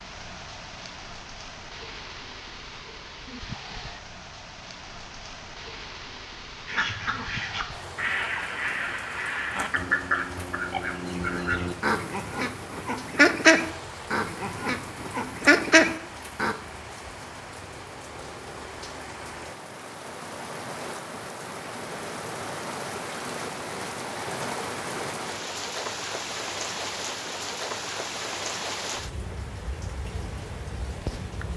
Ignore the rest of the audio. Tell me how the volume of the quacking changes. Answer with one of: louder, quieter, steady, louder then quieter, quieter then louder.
louder.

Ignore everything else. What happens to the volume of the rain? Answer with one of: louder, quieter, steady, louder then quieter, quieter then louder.
louder.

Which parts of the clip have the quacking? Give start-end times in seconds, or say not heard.
6.7-16.6.